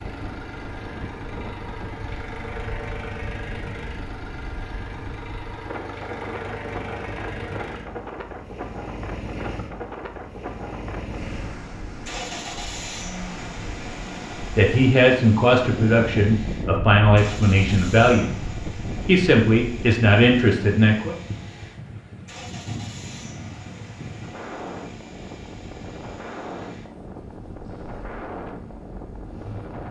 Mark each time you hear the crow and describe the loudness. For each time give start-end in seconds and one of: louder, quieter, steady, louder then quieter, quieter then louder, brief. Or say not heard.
not heard.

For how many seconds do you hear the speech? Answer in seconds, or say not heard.
6 s.